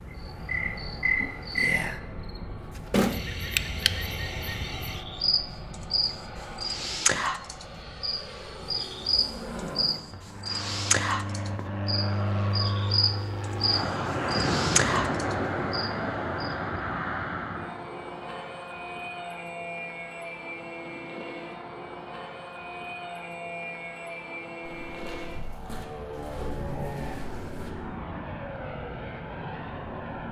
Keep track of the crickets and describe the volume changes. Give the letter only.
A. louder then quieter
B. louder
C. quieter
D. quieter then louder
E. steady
E.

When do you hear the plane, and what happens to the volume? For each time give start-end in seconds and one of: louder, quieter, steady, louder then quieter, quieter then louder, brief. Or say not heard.
0.0-30.2 louder then quieter.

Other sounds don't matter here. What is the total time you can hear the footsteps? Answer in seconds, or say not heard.
3 s.